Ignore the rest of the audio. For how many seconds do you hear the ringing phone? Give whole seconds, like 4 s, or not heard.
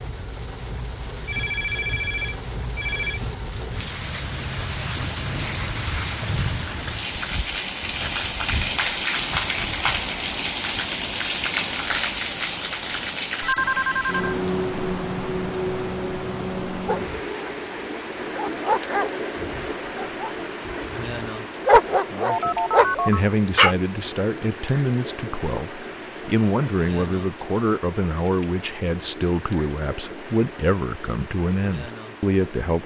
4 s.